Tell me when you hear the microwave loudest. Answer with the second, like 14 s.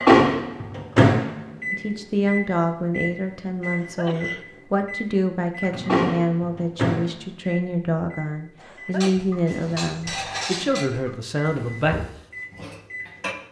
1 s.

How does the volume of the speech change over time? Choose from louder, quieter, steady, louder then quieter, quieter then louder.
steady.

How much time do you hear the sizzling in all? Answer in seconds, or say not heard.
not heard.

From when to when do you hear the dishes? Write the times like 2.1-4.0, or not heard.
8.9-13.3.